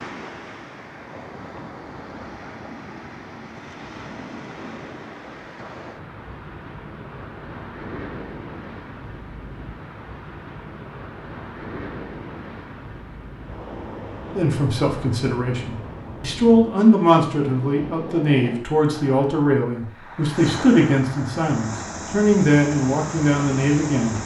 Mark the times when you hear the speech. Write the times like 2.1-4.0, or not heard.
14.3-24.2.